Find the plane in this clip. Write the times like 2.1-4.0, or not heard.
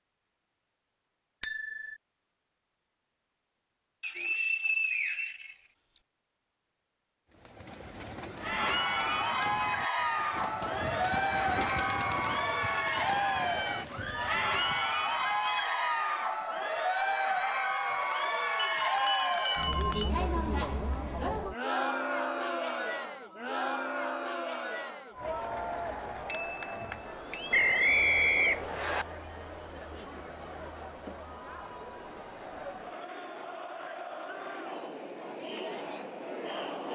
not heard.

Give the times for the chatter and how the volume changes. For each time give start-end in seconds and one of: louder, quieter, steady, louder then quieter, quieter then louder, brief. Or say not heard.
8.3-36.9 quieter.